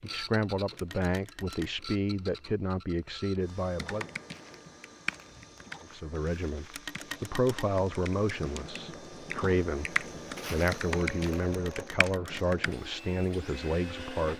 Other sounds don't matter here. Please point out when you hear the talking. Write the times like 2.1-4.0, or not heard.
0.0-4.0, 5.9-14.3.